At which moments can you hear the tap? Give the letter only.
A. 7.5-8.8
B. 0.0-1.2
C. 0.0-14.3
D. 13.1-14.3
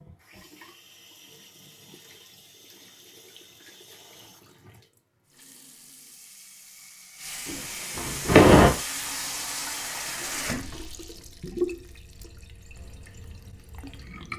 C.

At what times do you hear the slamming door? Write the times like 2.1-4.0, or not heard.
7.5-8.8.